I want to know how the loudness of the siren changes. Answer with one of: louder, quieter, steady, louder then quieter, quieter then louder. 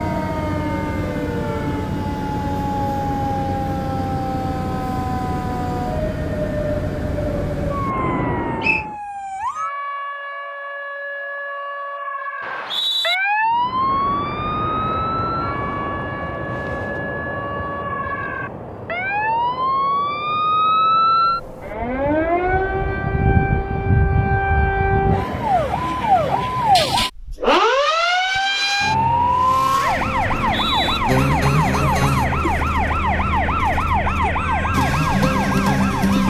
louder.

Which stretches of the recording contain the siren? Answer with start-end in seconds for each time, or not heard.
0.0-36.2.